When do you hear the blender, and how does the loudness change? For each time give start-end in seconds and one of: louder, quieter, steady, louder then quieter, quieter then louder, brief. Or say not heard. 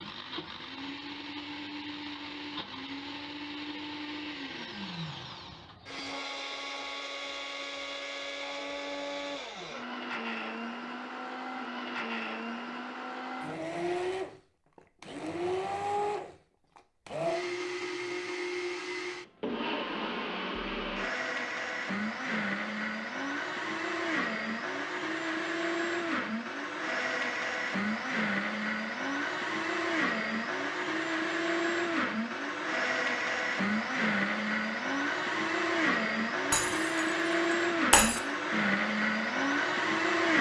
0.0-40.3 louder.